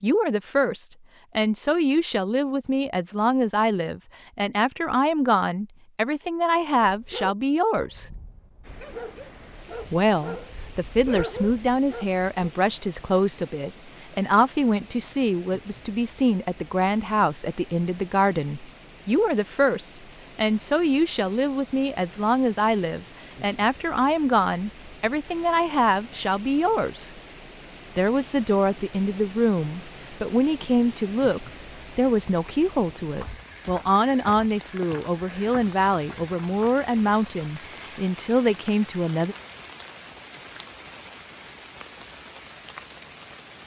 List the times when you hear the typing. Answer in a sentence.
The typing can't be heard in this clip.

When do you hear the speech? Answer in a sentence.
The speech can be heard from 0.0 to 8.1 s, from 9.9 to 27.1 s and from 27.9 to 39.4 s.